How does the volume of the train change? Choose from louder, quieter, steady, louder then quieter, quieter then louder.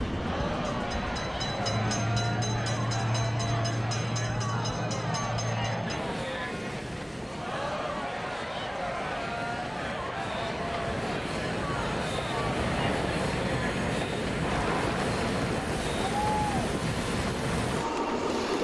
quieter then louder.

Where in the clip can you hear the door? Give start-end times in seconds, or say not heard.
not heard.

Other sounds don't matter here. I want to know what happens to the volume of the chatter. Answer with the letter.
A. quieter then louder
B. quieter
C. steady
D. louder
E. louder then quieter
C.